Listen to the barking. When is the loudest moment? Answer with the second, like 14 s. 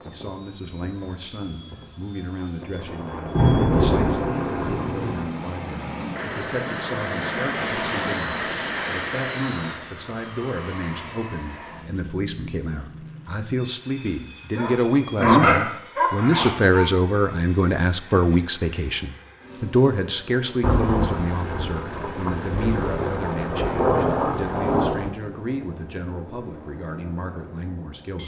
15 s.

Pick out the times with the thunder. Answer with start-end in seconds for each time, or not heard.
2.9-5.3, 20.6-25.1.